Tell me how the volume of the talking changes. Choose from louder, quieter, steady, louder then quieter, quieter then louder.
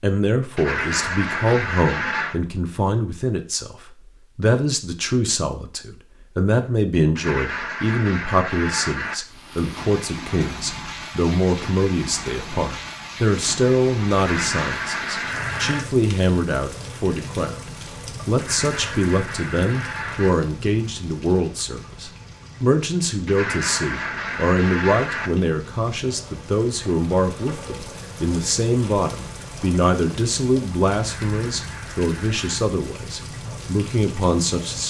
steady.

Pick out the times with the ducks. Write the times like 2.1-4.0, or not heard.
0.6-2.4, 7.2-9.2, 14.2-15.8, 18.4-20.4, 23.2-25.3, 30.9-32.6.